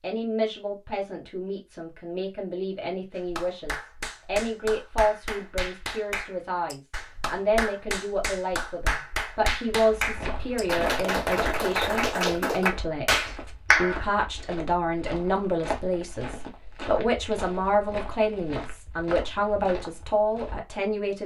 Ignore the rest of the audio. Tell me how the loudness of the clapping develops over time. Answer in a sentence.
The volume of the clapping goes up.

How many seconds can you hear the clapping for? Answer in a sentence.
You can hear the clapping for 11 seconds altogether.